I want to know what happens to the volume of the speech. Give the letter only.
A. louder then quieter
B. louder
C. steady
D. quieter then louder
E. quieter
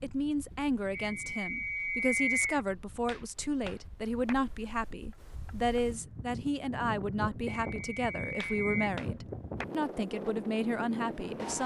C.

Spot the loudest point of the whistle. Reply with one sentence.
The volume of the whistle peaks at 2 seconds.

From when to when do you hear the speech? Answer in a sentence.
You can hear the speech from 0.0 to 11.6 s.